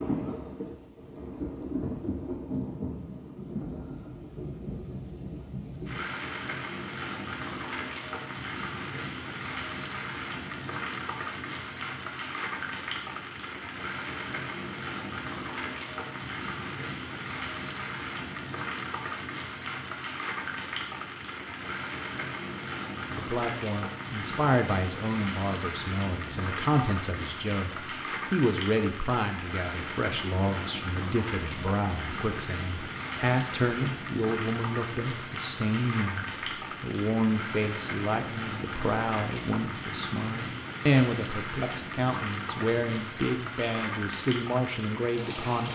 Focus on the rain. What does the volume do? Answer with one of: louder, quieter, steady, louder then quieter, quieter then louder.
steady.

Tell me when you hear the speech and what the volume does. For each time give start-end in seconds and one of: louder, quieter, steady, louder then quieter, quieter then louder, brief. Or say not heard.
23.1-45.7 steady.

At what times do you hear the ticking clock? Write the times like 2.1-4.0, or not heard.
not heard.